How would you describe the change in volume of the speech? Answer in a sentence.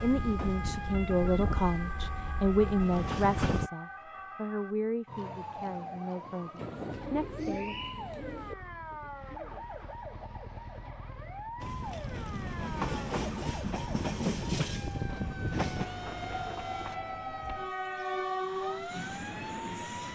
The loudness of the speech goes down.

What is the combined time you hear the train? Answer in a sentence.
You can hear the train for 12 seconds altogether.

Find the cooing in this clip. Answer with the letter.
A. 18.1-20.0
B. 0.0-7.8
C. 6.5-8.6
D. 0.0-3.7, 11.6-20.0
C.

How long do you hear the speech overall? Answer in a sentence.
The speech can be heard for 8 seconds in total.